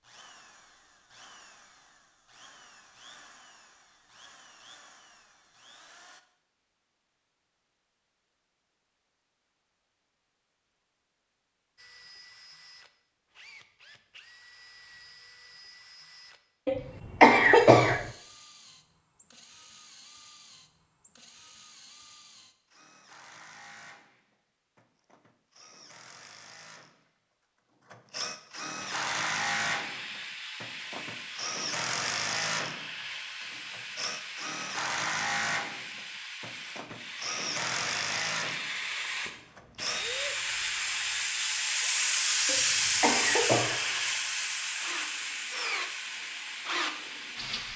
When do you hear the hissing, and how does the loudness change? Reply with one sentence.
You can hear the hissing from 28.8 to 47.7 s, getting louder then quieter.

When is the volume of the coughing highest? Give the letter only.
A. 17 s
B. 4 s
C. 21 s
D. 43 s
A.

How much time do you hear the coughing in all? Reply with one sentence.
The coughing can be heard for 3 seconds in total.